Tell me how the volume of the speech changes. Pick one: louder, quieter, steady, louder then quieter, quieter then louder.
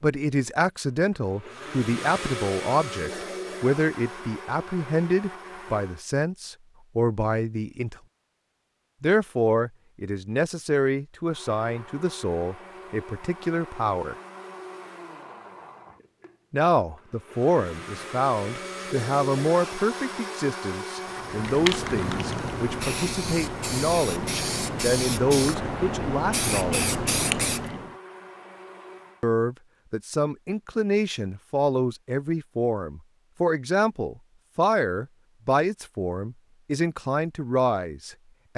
steady.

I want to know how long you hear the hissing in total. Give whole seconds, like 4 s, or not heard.
7 s.